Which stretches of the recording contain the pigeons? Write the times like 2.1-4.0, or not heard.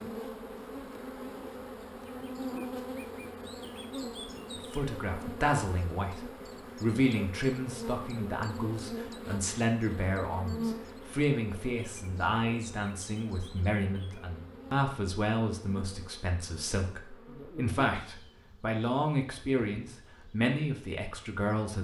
not heard.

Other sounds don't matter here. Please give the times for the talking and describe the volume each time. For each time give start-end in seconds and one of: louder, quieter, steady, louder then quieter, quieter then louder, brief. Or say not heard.
4.5-21.8 steady.